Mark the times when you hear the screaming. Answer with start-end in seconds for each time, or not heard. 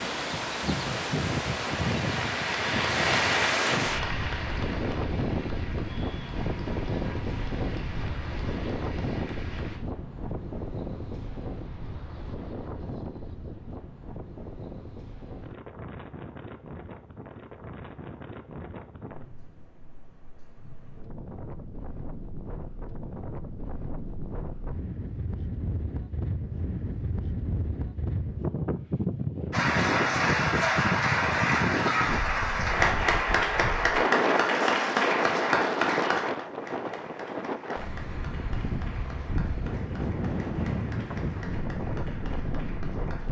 not heard.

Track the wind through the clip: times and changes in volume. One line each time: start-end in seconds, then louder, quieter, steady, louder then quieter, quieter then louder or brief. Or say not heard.
0.0-43.2 quieter then louder.